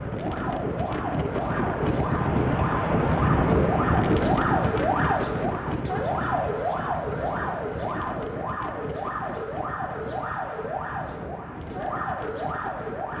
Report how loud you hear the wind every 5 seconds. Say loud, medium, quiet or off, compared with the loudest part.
loud, medium, quiet.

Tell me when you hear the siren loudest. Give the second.
5 s.